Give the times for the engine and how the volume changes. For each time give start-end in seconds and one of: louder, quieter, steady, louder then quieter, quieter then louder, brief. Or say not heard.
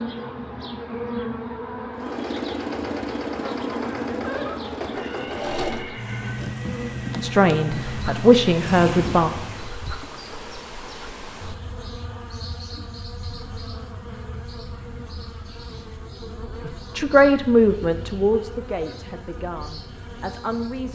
1.9-9.8 steady.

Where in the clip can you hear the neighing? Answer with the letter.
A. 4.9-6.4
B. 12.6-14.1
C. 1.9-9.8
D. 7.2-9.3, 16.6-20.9
A.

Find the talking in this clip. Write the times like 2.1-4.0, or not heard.
7.2-9.3, 16.6-20.9.